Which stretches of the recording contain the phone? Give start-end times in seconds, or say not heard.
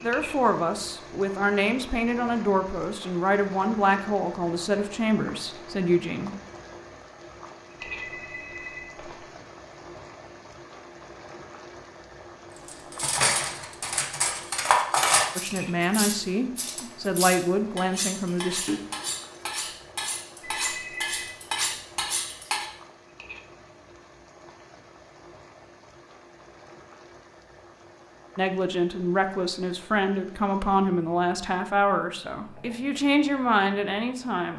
7.8-9.2, 20.6-21.4.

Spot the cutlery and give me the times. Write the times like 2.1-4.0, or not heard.
12.7-22.6.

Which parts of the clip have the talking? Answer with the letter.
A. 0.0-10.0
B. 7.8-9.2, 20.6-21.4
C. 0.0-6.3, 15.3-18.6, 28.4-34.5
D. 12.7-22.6
C.